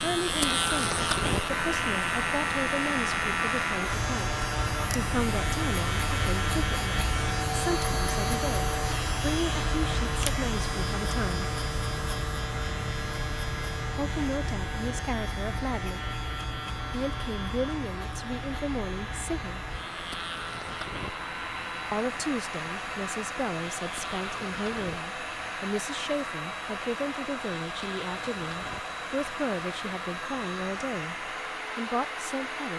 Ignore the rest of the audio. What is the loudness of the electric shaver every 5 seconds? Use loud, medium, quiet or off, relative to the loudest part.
loud, loud, medium, medium, medium, quiet, quiet.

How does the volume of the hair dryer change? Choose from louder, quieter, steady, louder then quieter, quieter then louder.
quieter then louder.